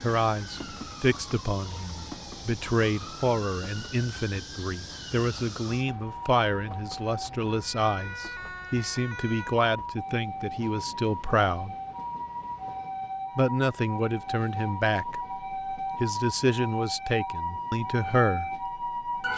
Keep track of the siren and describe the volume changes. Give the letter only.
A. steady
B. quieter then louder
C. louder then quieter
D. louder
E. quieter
D.